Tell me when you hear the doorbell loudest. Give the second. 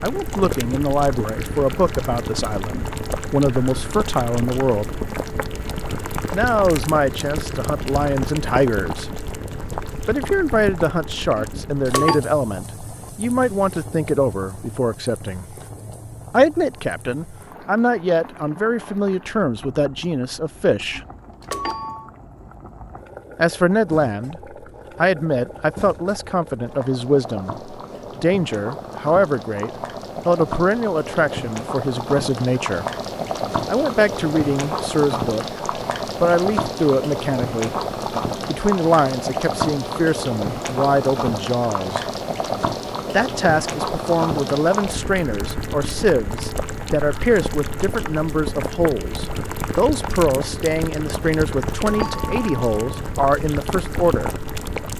12 s.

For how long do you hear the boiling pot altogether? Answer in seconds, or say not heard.
55 s.